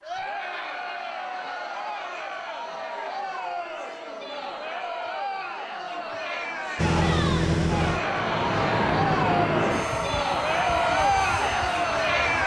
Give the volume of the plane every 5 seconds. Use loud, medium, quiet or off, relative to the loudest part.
off, loud, medium.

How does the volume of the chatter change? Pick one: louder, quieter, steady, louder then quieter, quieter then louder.
louder.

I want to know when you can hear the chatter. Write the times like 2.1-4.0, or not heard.
0.0-12.4.